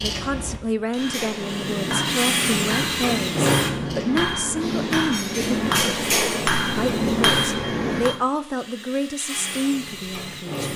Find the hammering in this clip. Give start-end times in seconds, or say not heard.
0.9-8.2.